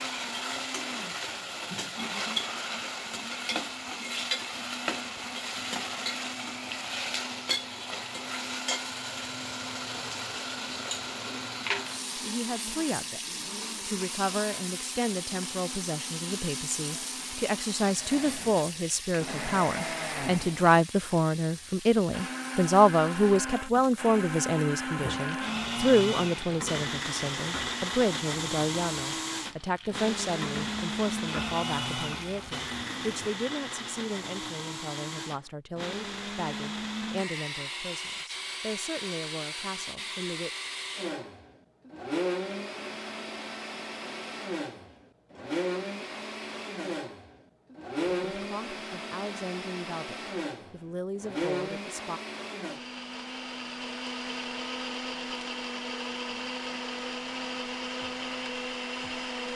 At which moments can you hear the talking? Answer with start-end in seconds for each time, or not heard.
12.2-40.5, 48.0-52.2.